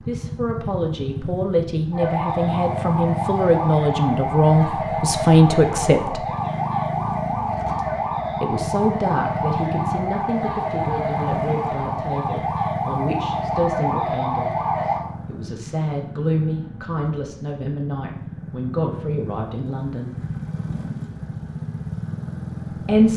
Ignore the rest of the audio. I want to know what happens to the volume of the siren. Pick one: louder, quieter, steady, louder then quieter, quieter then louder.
steady.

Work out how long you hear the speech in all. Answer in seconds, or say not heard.
18 s.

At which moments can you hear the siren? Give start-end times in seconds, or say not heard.
1.9-15.0.